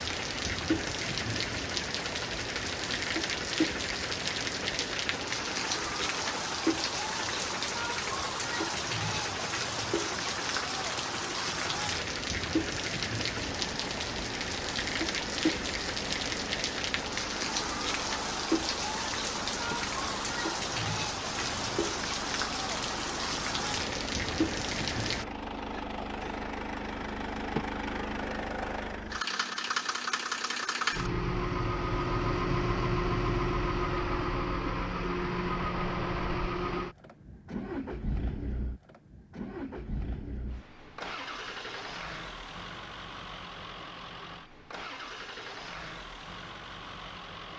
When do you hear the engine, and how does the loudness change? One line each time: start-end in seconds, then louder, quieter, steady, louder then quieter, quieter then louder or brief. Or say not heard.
0.0-47.5 louder then quieter.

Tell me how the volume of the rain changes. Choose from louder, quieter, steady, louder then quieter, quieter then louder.
steady.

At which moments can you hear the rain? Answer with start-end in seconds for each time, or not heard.
0.0-25.2.